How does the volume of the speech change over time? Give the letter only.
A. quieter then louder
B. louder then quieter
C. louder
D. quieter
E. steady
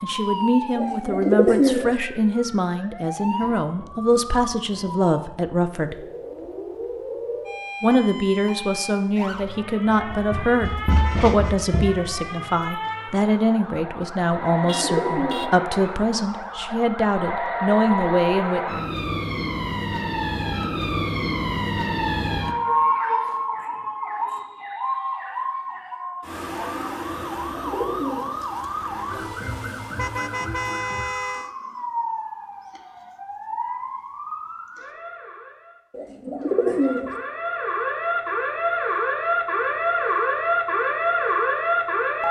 E.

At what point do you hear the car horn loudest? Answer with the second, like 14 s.
31 s.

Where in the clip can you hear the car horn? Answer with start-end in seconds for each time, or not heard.
10.8-11.6, 14.7-15.5, 29.9-31.5.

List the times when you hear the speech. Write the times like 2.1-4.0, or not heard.
0.0-6.0, 7.8-18.6.